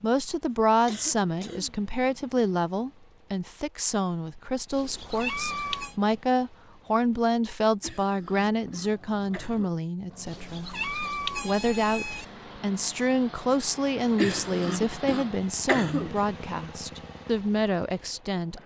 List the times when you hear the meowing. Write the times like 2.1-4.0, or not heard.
4.7-6.0, 10.2-12.2.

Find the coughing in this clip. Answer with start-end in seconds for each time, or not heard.
0.8-1.8, 7.8-9.8, 14.2-16.1.